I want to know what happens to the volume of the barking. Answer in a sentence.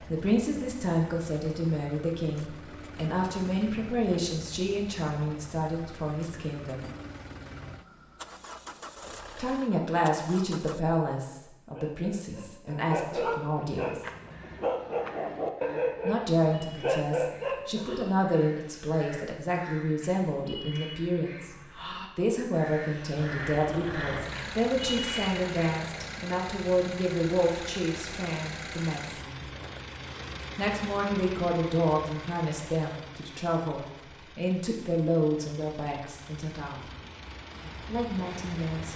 The loudness of the barking goes up.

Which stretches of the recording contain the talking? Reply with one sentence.
You can hear the talking from 0.0 to 6.9 s, from 9.3 to 14.1 s, from 16.1 to 21.6 s, from 22.1 to 29.4 s, from 30.6 to 37.0 s and from 37.9 to 38.9 s.